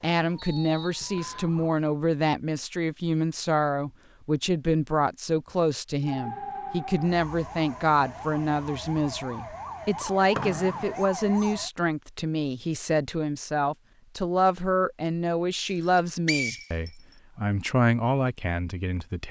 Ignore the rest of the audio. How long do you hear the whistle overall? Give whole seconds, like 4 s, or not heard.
3 s.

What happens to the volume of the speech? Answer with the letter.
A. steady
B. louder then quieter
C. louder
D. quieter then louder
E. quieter
A.